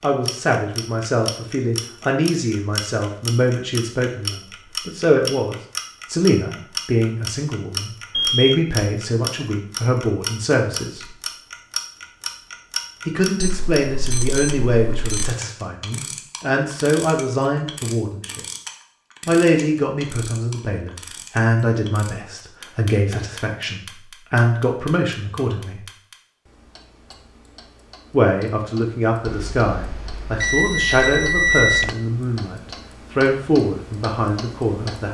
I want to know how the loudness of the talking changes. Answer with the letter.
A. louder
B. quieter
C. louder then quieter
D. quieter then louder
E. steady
E.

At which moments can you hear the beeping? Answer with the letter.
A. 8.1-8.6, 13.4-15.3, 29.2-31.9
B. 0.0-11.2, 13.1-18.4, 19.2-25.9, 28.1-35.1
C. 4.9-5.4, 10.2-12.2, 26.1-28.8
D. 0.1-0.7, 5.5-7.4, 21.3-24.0
A.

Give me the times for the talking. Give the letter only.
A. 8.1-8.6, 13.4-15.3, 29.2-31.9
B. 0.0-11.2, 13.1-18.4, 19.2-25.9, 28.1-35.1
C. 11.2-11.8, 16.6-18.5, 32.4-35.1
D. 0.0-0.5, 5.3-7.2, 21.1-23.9
B.